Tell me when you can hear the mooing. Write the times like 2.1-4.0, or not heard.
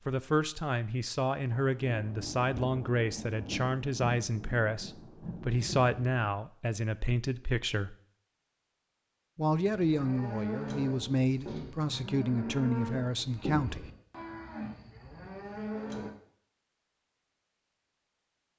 9.6-16.1.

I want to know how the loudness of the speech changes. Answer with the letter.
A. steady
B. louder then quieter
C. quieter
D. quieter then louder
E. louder
A.